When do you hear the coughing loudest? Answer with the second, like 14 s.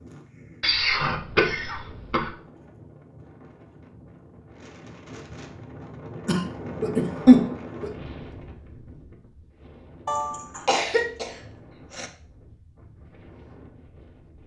7 s.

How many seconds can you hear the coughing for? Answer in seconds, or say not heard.
5 s.